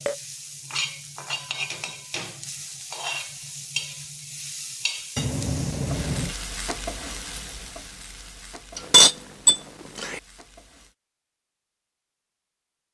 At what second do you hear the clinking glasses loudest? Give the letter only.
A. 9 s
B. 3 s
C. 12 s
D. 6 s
A.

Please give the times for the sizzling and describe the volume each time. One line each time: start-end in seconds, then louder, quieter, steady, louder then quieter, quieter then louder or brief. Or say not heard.
0.0-10.9 quieter.